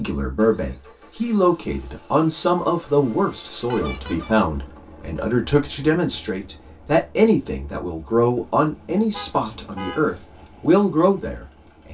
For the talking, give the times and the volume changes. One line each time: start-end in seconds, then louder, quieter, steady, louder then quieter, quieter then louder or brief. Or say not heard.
0.0-11.8 steady.